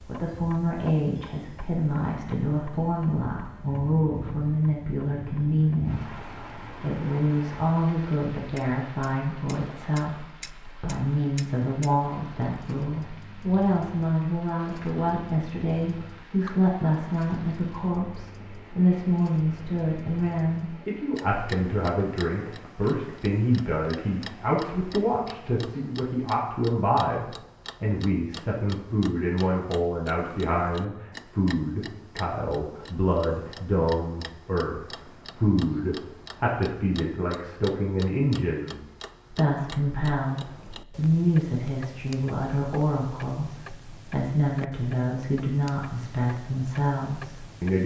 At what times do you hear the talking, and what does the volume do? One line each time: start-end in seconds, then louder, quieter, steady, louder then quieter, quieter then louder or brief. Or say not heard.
0.0-47.8 steady.